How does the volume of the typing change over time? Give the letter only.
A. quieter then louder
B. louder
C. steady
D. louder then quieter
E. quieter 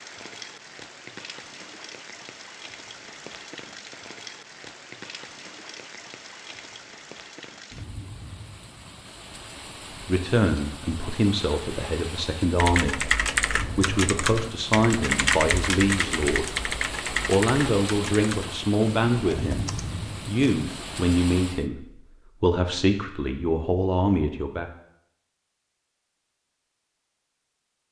E.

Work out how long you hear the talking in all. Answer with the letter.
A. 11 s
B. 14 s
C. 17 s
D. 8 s
B.